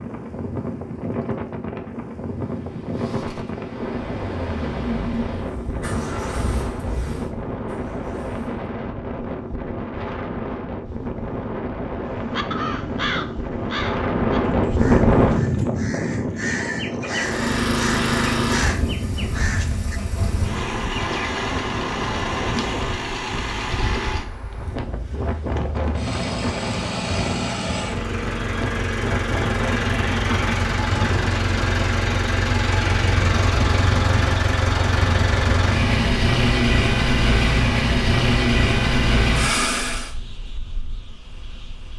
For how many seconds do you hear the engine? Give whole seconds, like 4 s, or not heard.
29 s.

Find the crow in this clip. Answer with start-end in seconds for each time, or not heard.
12.1-20.0.